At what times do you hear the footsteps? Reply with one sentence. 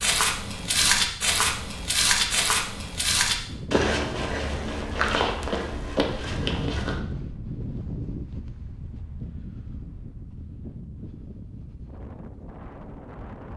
The footsteps can be heard from 0.0 to 7.0 s.